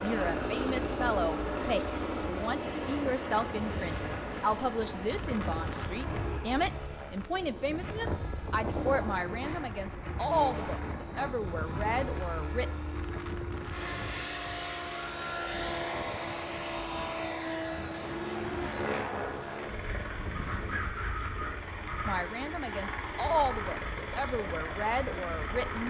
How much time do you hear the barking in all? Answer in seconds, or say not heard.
not heard.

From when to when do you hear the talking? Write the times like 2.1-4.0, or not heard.
0.0-12.7, 22.1-25.8.